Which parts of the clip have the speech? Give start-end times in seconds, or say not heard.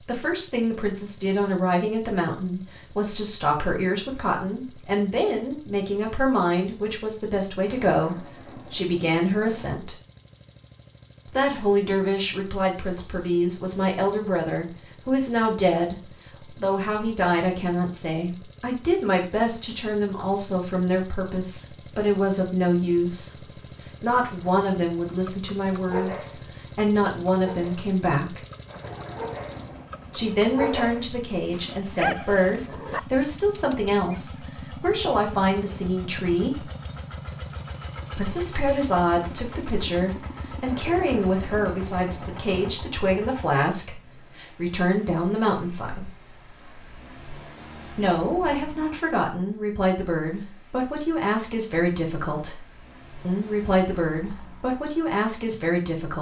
0.0-9.9, 11.2-23.4, 24.0-28.4, 30.1-36.7, 38.1-46.1, 47.9-56.1.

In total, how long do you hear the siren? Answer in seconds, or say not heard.
not heard.